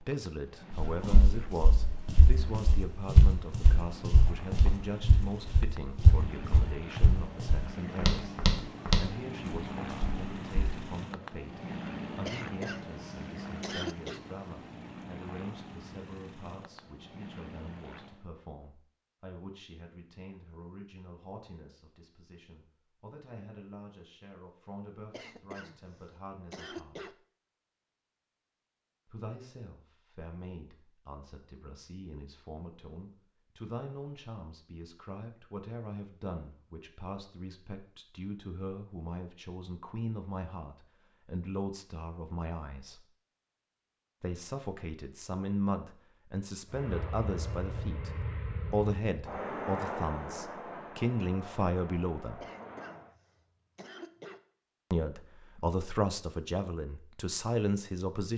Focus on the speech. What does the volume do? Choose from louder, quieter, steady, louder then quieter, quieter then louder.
quieter then louder.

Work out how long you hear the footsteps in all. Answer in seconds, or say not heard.
10 s.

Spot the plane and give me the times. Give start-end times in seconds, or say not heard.
0.0-18.3, 46.7-53.1.